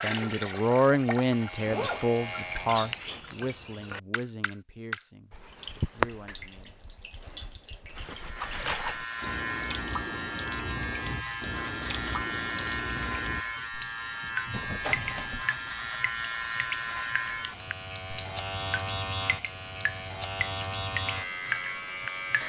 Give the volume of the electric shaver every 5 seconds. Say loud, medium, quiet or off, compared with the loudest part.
medium, loud, loud, loud, loud.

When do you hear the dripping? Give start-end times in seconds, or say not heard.
0.0-22.4.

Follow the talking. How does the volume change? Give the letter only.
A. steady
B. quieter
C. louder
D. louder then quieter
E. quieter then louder
B.